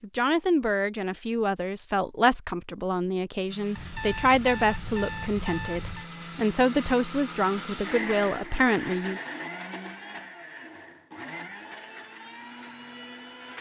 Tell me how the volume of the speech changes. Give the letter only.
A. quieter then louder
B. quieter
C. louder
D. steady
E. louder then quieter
D.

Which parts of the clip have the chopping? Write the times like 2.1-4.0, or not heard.
not heard.